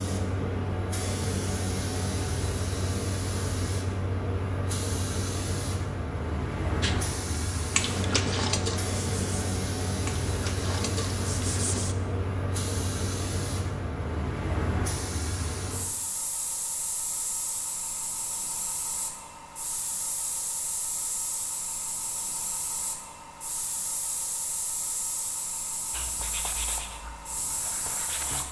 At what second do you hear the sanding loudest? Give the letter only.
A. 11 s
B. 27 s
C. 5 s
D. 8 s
D.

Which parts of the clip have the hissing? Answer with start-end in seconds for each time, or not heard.
0.0-28.4.